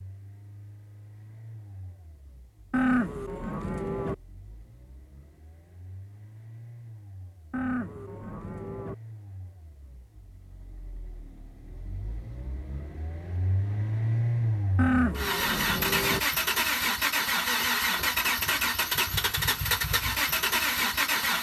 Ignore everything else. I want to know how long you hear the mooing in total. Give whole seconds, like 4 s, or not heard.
4 s.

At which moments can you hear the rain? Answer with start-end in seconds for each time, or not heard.
not heard.